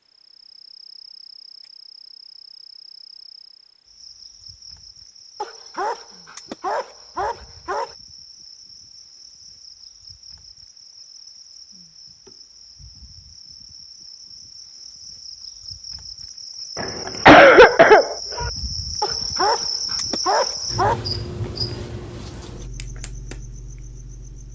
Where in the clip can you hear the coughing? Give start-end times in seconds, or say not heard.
16.8-18.5.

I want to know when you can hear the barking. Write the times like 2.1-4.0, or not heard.
5.4-8.0, 19.0-21.1.